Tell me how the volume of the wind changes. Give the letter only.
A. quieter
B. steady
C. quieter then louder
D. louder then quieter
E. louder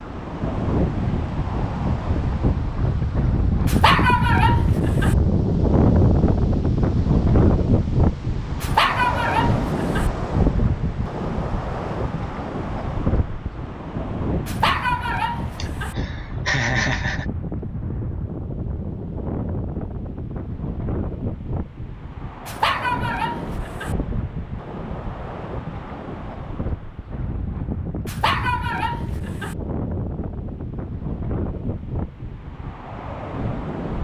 A.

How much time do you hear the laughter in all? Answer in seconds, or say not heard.
2 s.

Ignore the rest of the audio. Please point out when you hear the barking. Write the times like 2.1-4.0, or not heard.
3.6-5.2, 8.6-10.1, 14.4-15.9, 22.4-23.9, 28.1-29.6.